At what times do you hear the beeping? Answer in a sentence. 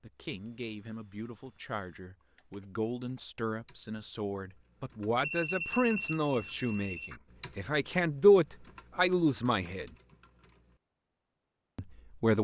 You can hear the beeping from 5.2 to 7.2 s.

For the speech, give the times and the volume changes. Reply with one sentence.
The speech can be heard from 0.0 to 9.9 s, getting louder; and briefly from 11.8 to 12.3 s.